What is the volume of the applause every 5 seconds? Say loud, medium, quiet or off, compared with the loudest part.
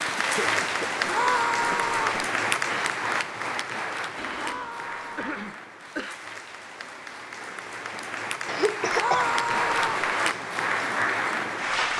loud, medium, loud.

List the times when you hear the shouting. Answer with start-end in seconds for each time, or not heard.
1.1-2.2, 4.3-5.3, 8.9-10.1.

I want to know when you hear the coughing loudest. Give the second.
9 s.